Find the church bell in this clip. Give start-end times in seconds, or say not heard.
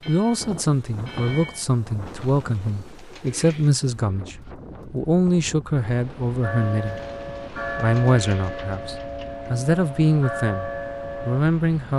0.0-1.6, 6.4-11.4.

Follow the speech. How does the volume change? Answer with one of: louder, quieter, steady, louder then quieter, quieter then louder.
steady.